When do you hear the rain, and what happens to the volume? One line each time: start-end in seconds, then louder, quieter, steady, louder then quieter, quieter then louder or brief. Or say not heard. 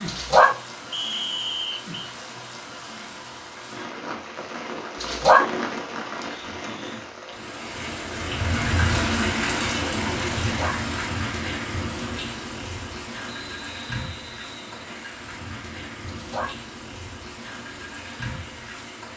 0.0-19.1 louder then quieter.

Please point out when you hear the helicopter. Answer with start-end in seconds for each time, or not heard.
not heard.